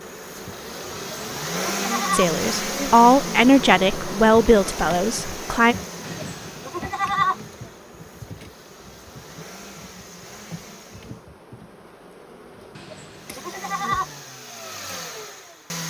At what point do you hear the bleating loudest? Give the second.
7 s.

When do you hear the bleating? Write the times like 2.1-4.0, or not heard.
0.9-2.3, 6.0-7.3, 12.8-14.1.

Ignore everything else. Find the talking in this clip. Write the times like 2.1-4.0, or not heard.
2.1-5.8.